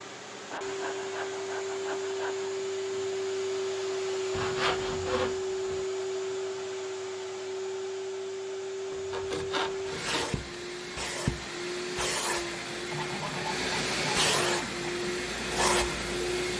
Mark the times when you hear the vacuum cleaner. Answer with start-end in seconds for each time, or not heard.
0.0-16.5.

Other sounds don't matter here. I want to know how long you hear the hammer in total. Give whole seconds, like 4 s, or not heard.
not heard.